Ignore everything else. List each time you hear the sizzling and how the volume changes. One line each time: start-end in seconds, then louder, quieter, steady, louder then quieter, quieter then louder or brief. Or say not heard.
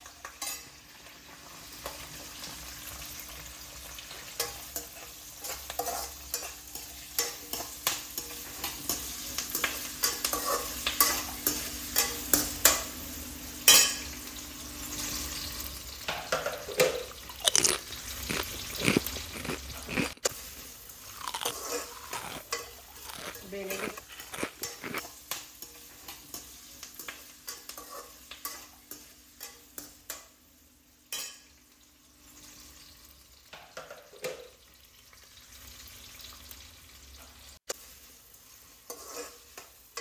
0.0-39.9 louder then quieter.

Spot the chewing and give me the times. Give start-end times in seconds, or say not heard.
17.1-25.0.